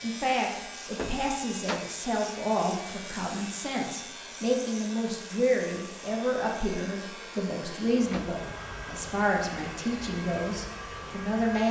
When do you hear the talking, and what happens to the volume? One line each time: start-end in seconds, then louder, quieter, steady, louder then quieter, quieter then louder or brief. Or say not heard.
0.0-11.6 steady.